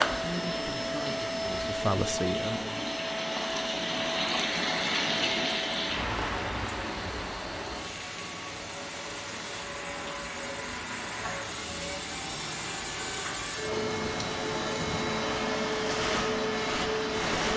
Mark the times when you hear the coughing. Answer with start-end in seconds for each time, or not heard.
not heard.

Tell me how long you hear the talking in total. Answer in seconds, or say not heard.
3 s.